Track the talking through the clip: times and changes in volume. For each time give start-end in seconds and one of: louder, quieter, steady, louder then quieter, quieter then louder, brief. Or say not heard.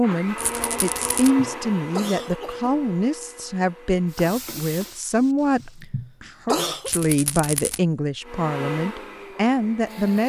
0.0-10.2 steady.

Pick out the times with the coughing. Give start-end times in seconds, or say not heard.
1.1-2.7, 5.6-6.9.